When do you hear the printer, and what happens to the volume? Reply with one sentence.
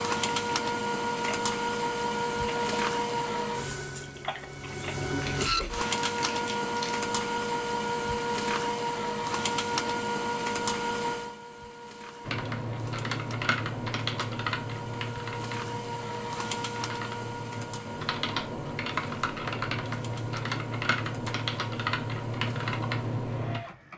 You can hear the printer from 0.0 to 23.9 s, getting quieter.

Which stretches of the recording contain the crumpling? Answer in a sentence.
You can hear the crumpling from 5.2 to 7.0 s.